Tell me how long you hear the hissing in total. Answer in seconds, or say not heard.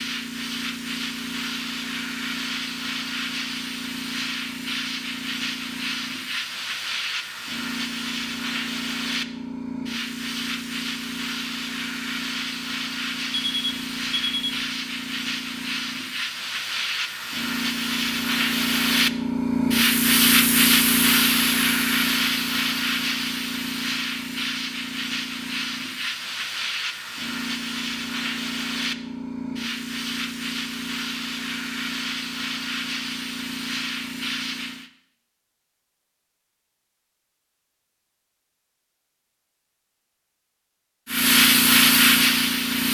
37 s.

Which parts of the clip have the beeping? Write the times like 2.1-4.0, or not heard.
13.3-14.6.